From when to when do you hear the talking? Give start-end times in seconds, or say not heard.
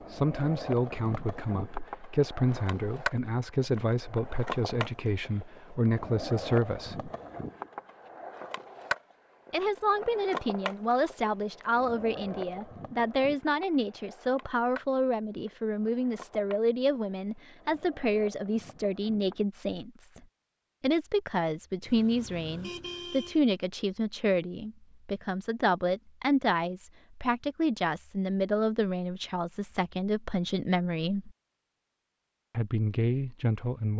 0.1-7.1, 9.5-20.2, 20.8-31.3, 32.5-33.9.